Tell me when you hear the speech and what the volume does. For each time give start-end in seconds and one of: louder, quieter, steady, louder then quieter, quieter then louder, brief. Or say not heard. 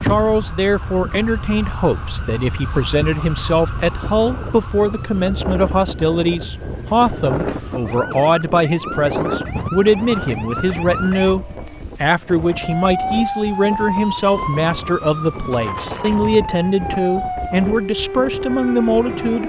0.0-19.4 steady.